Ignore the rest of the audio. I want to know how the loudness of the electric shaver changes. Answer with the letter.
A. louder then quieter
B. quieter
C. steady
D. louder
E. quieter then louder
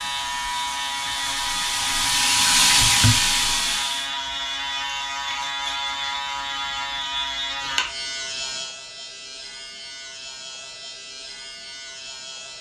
B.